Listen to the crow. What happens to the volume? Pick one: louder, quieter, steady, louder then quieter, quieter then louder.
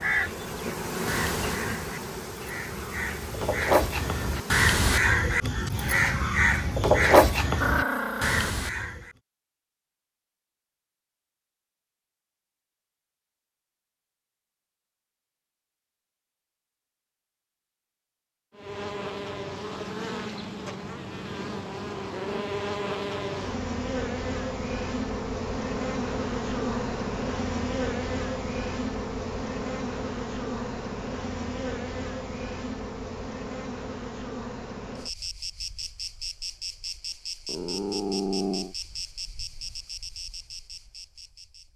louder.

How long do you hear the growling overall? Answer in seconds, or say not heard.
2 s.